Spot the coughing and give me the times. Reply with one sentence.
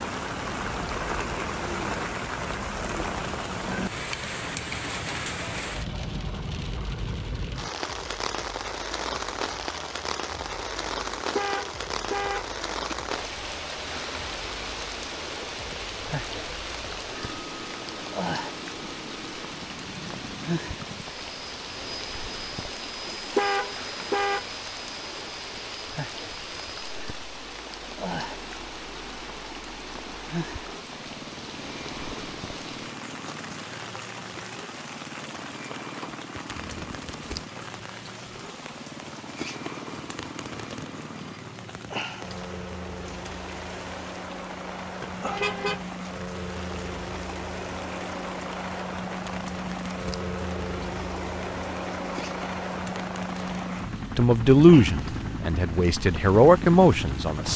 You can't hear the coughing here.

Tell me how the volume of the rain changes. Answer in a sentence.
The loudness of the rain goes down.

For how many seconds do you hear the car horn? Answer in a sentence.
The car horn can be heard for 4 seconds in total.